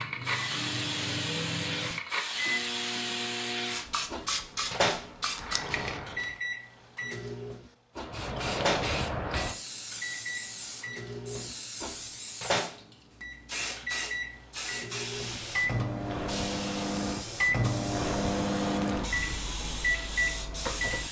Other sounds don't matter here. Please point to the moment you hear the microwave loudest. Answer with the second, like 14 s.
18 s.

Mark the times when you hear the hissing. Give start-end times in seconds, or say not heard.
0.0-6.4, 8.0-21.0.